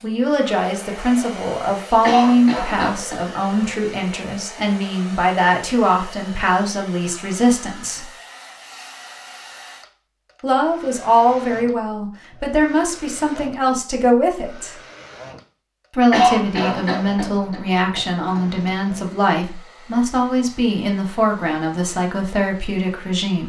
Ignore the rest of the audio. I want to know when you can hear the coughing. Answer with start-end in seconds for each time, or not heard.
2.0-3.2, 16.1-18.7.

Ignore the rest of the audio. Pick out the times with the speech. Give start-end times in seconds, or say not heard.
0.0-8.1, 10.4-14.8, 15.9-23.4.